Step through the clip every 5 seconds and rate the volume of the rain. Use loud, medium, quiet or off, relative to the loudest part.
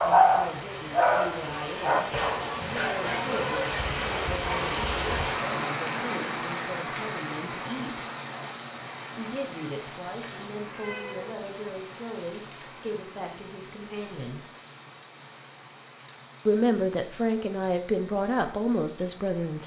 loud, loud, medium, quiet.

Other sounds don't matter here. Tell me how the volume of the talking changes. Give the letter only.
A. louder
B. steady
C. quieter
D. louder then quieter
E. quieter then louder
A.